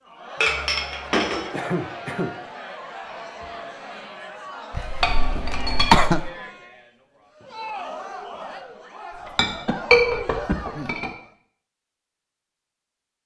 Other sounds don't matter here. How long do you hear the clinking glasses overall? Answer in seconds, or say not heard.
4 s.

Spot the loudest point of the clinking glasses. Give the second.
10 s.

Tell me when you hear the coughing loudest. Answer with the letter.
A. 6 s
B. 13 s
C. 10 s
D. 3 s
A.